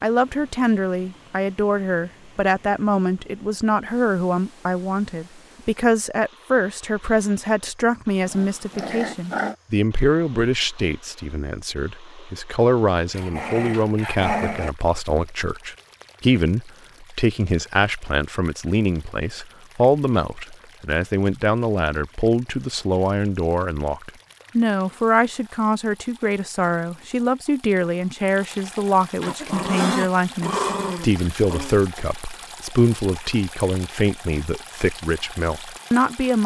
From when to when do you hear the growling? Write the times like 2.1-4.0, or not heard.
8.2-9.6, 13.1-14.7, 29.2-31.8.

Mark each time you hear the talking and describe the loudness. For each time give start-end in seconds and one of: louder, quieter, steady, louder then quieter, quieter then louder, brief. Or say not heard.
0.0-36.4 steady.